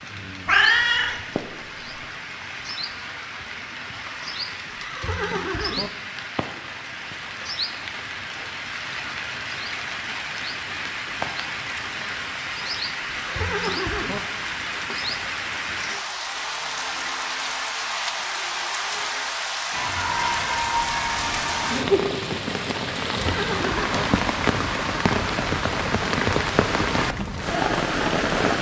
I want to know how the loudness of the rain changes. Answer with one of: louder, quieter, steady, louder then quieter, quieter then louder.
louder.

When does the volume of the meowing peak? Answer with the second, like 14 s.
1 s.